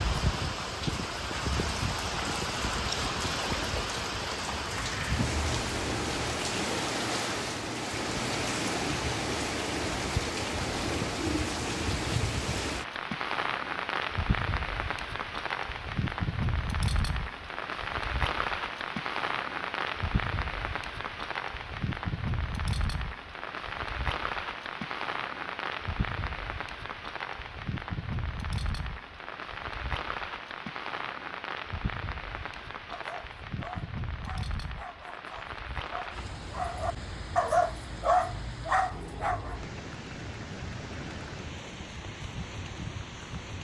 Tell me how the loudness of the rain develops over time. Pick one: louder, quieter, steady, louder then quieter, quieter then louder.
quieter.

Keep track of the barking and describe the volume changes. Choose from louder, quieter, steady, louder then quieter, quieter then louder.
louder.